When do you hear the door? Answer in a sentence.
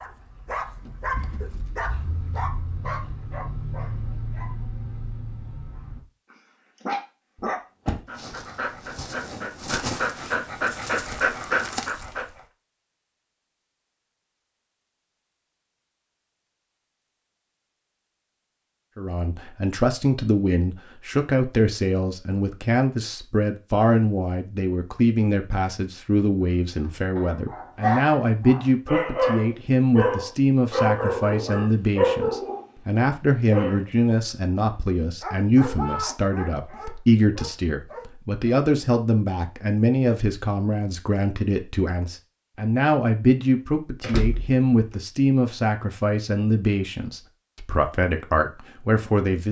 You can hear the door from 7.4 to 8.0 s and from 44.0 to 45.0 s.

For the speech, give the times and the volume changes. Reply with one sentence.
You can hear the speech from 18.9 to 49.4 s, at a steady volume.